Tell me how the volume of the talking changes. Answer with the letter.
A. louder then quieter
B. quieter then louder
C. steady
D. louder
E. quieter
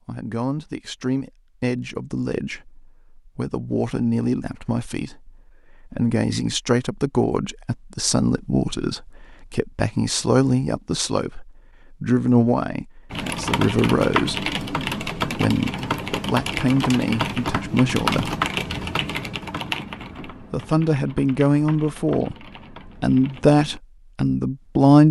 D.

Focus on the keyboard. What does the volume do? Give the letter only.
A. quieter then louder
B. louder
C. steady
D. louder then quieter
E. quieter
E.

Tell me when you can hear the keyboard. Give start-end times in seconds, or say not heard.
13.1-23.8.